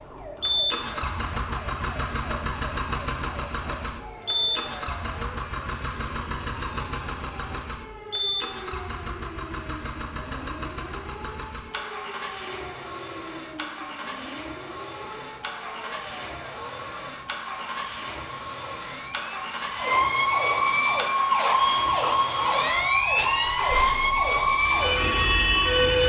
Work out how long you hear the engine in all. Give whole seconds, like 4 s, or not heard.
26 s.